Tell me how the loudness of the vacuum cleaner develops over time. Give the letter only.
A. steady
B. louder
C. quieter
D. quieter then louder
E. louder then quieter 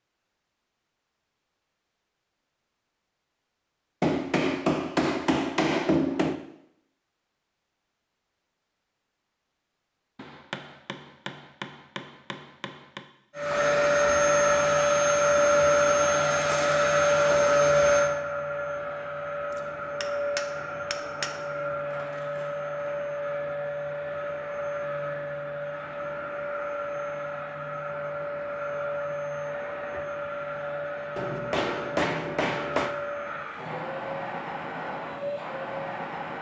C.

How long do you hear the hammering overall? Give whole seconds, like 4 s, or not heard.
9 s.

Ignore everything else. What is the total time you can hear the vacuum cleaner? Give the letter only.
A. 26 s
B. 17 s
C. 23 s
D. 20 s
C.